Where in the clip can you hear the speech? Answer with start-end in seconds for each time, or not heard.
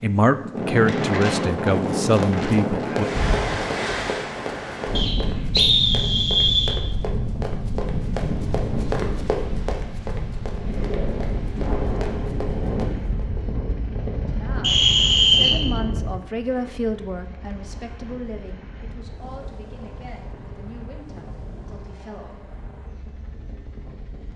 0.0-3.0, 14.2-22.6.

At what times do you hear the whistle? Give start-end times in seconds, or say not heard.
5.0-6.8, 14.6-15.6.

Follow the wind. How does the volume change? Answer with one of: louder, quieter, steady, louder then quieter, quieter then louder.
quieter.